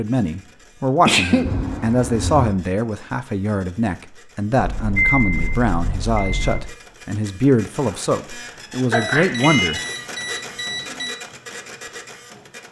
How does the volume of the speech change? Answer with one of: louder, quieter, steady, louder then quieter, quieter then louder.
steady.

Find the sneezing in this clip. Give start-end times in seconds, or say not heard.
1.1-1.5, 7.8-9.6.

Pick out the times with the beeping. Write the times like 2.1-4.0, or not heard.
1.4-2.5, 4.5-6.6, 8.9-11.2.